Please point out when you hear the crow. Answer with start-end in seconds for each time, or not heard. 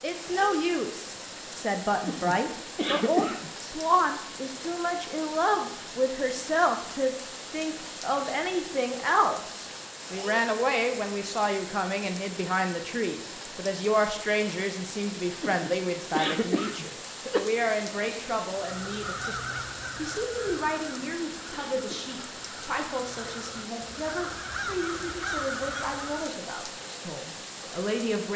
18.5-26.4.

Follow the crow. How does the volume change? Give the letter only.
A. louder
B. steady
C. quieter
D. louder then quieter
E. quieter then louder
E.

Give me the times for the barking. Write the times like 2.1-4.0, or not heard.
not heard.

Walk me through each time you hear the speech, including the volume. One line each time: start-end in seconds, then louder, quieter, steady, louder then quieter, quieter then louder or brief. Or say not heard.
0.0-28.3 quieter.